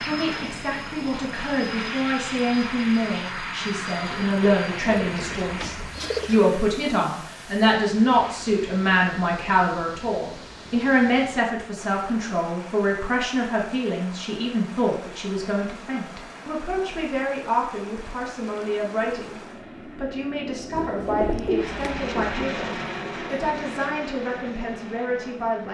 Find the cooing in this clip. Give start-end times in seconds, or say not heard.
5.0-6.4, 20.8-22.4.